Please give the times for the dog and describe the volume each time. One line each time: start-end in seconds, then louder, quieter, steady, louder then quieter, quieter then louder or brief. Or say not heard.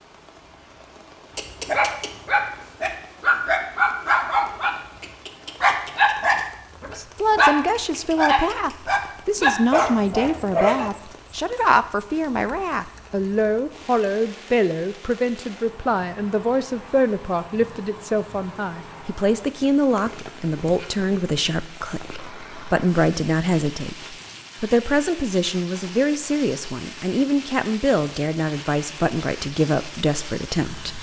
1.4-10.9 steady.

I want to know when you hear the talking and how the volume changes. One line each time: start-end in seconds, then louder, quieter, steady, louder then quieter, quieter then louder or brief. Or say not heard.
7.0-30.9 steady.